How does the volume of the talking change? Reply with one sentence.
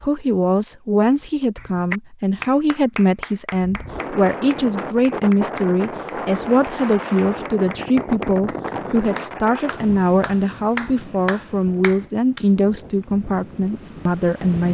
The volume of the talking stays about the same.